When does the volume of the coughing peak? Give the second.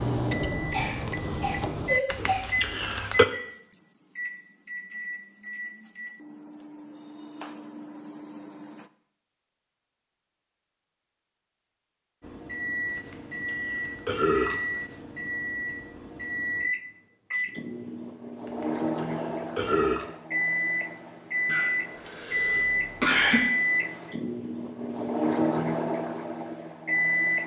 23 s.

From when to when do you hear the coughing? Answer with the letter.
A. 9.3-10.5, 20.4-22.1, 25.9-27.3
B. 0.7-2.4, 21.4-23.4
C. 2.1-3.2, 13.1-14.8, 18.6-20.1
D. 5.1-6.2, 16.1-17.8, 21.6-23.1
B.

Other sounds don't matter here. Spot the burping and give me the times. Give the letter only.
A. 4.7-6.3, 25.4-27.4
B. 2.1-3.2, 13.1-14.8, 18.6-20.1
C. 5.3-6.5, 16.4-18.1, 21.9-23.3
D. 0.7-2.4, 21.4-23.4
B.